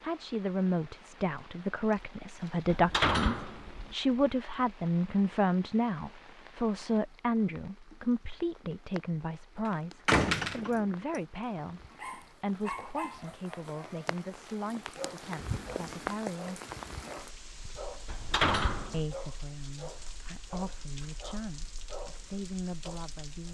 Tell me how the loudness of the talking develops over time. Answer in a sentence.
The volume of the talking goes down.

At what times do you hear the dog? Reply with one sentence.
You can hear the dog from 12.0 to 14.1 s, from 14.9 to 18.2 s and from 19.1 to 23.5 s.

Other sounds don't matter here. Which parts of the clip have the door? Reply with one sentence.
The door can be heard from 2.7 to 4.0 s, from 9.7 to 10.8 s and from 18.1 to 19.0 s.